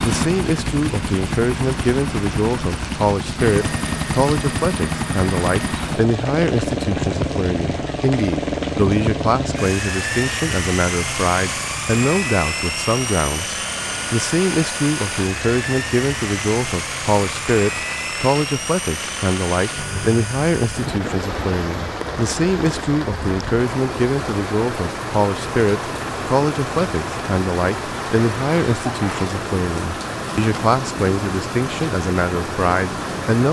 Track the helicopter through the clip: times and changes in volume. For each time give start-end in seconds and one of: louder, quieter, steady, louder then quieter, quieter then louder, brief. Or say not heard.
0.0-33.4 quieter.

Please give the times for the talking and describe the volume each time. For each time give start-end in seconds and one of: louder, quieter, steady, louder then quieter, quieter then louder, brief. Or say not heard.
0.0-33.4 steady.